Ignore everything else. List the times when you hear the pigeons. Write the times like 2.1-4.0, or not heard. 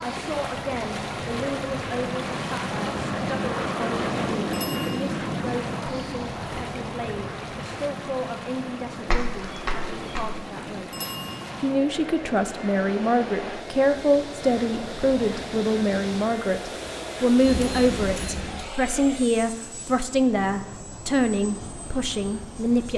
9.1-10.4.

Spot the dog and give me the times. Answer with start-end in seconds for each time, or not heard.
not heard.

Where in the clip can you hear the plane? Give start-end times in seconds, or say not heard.
0.0-22.9.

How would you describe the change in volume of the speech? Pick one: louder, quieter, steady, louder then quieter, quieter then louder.
louder.